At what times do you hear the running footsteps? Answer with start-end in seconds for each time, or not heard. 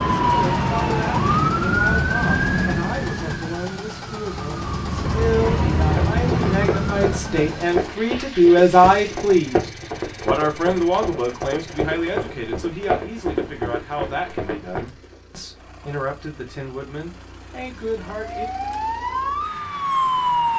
5.8-15.2.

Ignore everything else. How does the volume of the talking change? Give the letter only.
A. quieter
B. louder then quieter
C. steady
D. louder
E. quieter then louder
B.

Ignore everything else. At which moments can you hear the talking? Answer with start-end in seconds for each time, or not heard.
0.2-18.4.